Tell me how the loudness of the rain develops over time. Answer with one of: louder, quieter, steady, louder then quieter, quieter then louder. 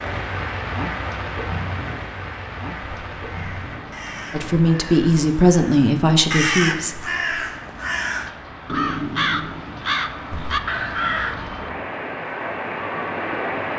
quieter then louder.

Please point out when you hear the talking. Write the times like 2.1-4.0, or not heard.
4.3-7.1.